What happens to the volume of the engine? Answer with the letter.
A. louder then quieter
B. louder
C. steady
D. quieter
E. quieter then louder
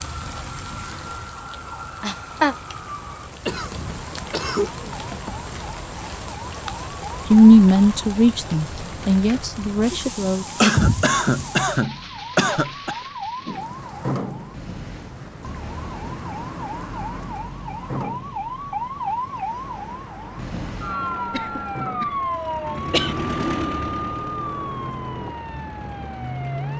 A.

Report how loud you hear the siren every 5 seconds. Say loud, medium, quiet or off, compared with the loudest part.
medium, medium, medium, loud, loud, loud.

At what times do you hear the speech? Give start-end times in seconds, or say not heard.
7.3-10.4.